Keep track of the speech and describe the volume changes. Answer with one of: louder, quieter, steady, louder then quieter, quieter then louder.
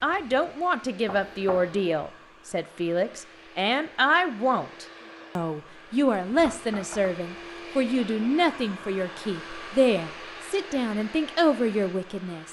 steady.